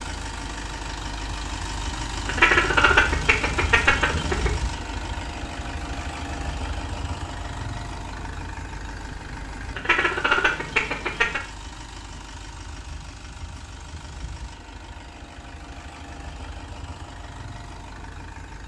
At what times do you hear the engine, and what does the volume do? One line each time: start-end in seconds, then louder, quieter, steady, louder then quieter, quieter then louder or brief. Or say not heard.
0.0-18.6 quieter.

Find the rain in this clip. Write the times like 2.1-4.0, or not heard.
not heard.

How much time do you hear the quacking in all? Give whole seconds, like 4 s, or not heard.
4 s.